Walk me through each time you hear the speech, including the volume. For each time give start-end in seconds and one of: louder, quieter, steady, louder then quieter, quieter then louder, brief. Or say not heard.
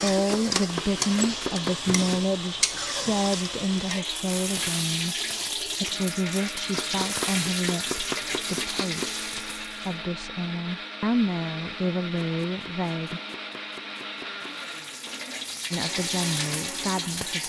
0.0-13.2 quieter then louder
15.7-17.4 brief.